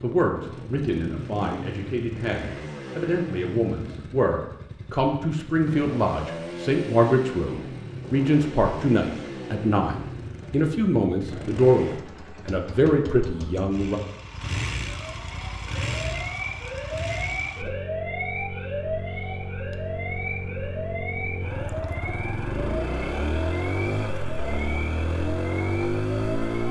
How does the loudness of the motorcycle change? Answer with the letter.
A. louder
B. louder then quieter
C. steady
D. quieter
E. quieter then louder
A.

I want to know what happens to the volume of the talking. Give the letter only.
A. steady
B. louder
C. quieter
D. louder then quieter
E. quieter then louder
B.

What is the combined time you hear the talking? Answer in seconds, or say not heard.
14 s.